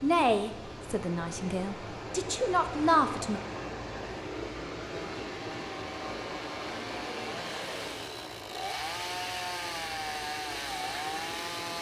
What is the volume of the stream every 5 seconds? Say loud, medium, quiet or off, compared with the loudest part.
loud, loud, medium.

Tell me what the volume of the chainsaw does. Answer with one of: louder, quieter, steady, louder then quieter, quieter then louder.
louder.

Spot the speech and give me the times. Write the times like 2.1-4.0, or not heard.
0.0-3.4.